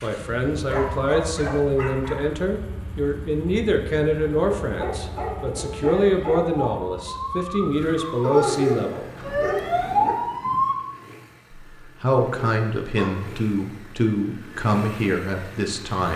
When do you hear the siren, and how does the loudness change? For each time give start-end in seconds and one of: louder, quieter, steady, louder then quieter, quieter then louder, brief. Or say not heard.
4.2-10.8 louder.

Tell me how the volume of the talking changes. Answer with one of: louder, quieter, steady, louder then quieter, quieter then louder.
steady.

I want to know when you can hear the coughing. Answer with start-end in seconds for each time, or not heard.
not heard.